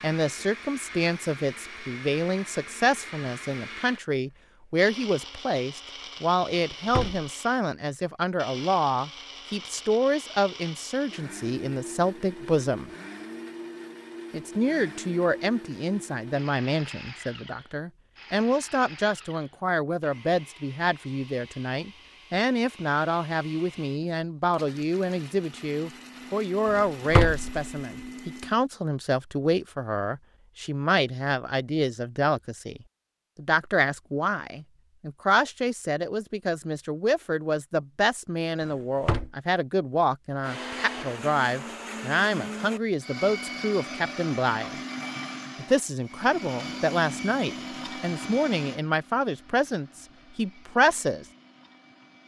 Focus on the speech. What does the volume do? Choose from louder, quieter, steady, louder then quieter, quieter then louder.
steady.